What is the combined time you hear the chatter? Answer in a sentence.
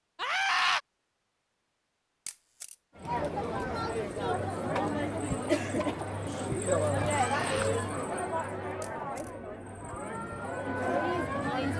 The chatter can be heard for 9 seconds in total.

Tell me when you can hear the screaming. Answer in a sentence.
You can hear the screaming from 0.1 to 0.8 s and from 7.0 to 7.8 s.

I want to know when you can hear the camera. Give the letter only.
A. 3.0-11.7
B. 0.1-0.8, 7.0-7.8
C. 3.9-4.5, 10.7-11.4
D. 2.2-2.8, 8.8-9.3
D.